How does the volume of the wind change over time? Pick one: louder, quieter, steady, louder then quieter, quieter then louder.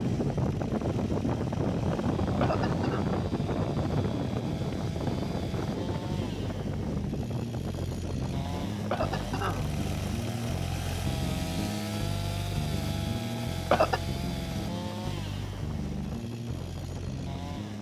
quieter.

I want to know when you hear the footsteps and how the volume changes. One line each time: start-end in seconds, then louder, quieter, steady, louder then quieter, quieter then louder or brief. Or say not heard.
not heard.